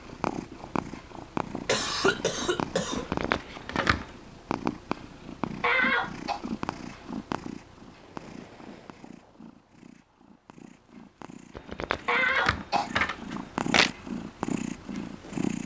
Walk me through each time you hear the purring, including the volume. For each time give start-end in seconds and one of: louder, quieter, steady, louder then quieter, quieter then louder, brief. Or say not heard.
0.0-15.6 quieter then louder.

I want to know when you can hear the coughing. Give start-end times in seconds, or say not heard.
1.6-3.1, 5.6-6.4, 12.1-12.9.